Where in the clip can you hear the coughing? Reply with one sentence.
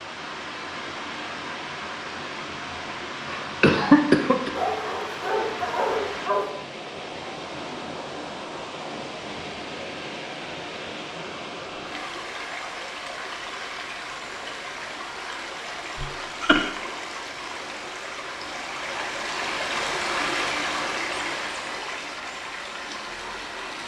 You can hear the coughing from 3.2 to 4.5 s and from 15.9 to 16.7 s.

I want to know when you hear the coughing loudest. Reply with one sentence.
The loudest moment of the coughing is at 4 seconds.